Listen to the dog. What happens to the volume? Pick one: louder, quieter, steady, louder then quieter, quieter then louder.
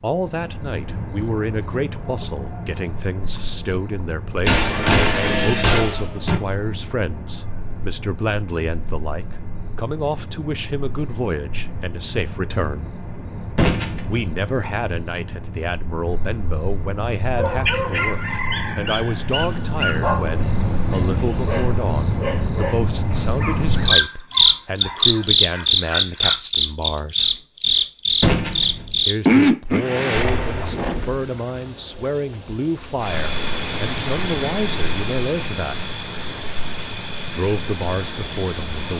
quieter.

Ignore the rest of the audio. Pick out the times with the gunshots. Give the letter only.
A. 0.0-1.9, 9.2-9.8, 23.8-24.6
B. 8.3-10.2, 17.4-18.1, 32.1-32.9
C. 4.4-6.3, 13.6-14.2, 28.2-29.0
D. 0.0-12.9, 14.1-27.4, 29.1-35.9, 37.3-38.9
C.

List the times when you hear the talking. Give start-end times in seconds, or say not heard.
0.0-12.9, 14.1-27.4, 29.1-35.9, 37.3-38.9.